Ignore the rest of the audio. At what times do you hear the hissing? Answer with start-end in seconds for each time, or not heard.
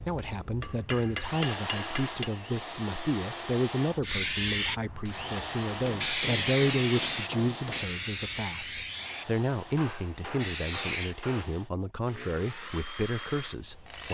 4.0-11.2.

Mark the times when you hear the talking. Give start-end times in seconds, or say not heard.
0.0-14.1.